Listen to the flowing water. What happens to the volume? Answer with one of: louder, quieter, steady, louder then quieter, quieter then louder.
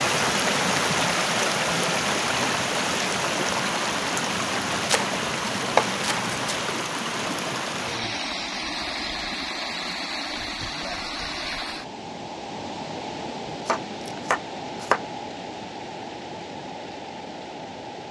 quieter.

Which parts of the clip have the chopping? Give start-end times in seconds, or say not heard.
4.8-6.5, 13.7-15.0.